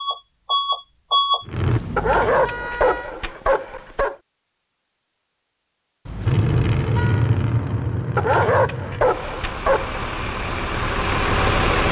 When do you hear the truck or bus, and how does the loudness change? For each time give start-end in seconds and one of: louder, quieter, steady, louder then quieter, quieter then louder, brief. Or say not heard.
0.0-1.8 brief
6.2-11.8 quieter then louder.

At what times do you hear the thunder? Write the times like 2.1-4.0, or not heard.
not heard.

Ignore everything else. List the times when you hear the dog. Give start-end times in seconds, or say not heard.
1.9-4.2, 8.2-9.9.